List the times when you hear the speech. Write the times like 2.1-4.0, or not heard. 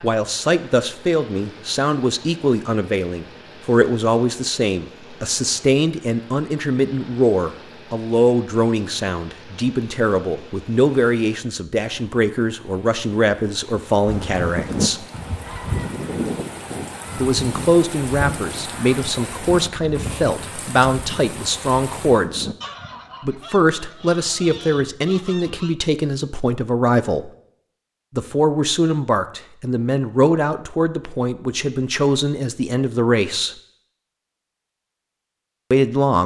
0.0-15.1, 17.1-22.5, 23.2-27.3, 28.1-33.5, 35.7-36.2.